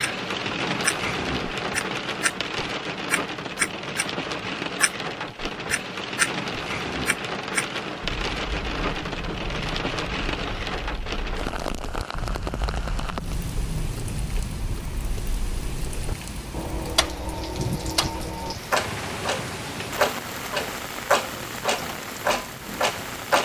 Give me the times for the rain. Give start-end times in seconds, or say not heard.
0.0-23.4.